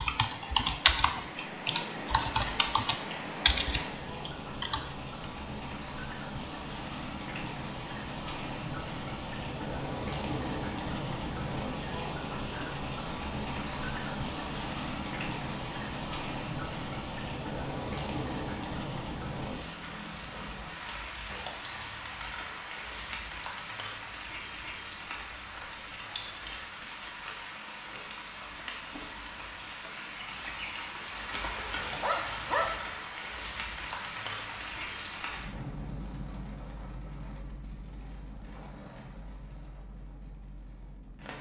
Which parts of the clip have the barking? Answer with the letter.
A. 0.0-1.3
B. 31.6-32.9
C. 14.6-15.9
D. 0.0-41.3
B.